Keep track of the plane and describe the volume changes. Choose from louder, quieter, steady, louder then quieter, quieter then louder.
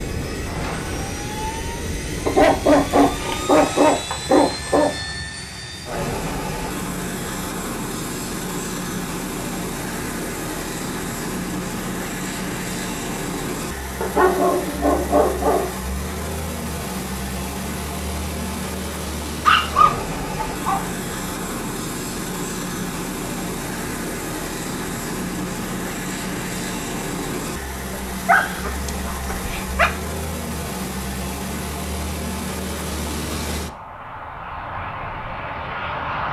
steady.